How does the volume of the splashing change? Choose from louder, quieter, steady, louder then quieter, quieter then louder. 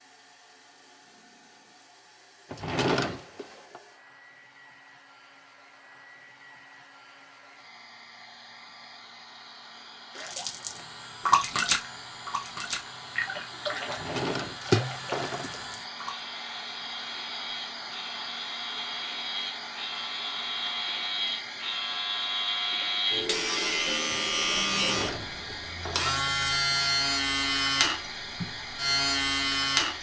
quieter then louder.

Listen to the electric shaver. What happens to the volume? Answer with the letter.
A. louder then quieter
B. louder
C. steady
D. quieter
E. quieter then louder
B.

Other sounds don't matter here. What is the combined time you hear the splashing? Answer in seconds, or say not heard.
6 s.